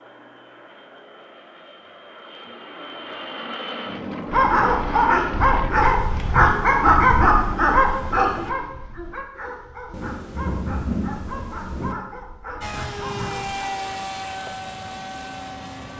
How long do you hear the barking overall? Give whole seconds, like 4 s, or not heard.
9 s.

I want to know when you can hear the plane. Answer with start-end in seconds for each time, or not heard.
0.0-8.6, 12.6-15.9.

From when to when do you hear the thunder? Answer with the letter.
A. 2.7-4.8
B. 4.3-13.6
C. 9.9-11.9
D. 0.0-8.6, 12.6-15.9
C.